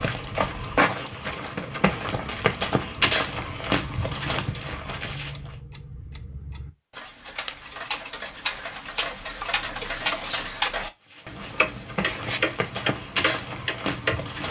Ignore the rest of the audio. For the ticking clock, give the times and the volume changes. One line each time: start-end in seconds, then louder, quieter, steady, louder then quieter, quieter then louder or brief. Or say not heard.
0.0-14.4 louder.